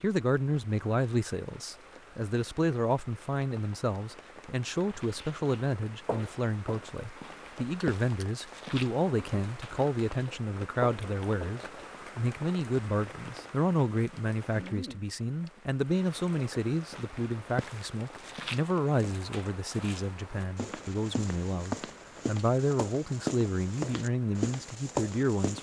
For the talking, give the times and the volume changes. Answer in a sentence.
The talking can be heard from 0.0 to 25.5 s, at a steady volume.